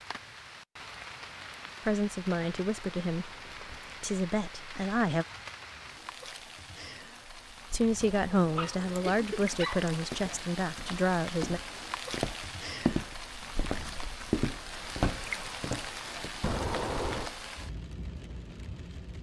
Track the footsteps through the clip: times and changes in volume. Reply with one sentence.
You can hear the footsteps from 9.4 to 16.4 s, getting louder.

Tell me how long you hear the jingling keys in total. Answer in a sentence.
The jingling keys can be heard for 3 seconds in total.